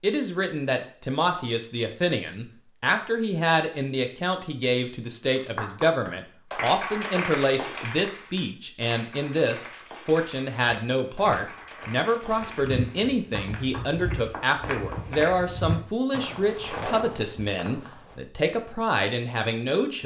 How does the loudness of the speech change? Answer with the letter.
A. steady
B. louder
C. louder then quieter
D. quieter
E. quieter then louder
A.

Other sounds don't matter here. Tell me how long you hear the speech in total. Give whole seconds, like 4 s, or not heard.
20 s.